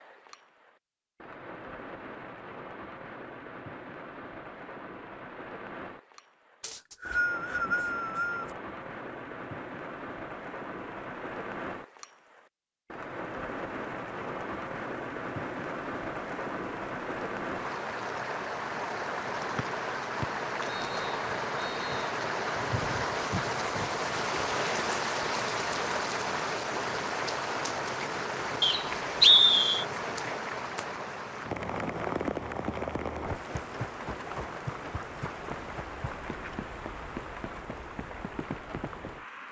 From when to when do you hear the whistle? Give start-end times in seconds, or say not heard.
6.6-8.5, 19.6-22.1, 28.6-29.9.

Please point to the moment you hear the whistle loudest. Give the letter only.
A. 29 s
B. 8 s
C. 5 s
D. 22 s
A.